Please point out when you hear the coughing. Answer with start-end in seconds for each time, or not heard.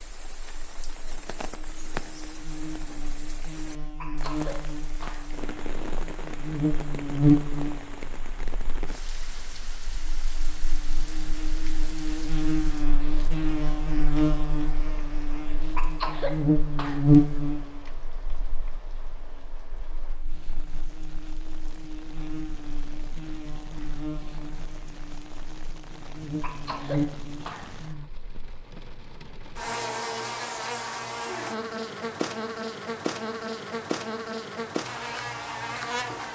3.8-5.2, 15.6-17.1, 26.2-27.7.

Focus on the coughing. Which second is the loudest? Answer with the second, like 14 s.
16 s.